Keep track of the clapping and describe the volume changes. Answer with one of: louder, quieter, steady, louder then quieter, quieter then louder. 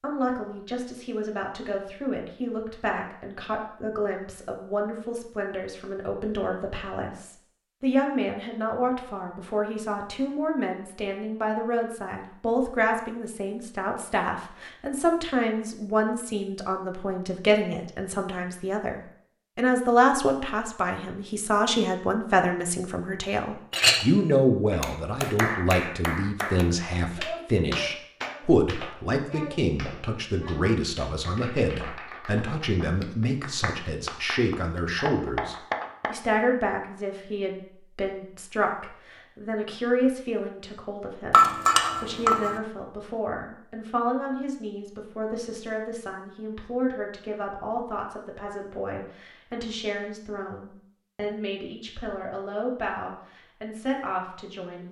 quieter then louder.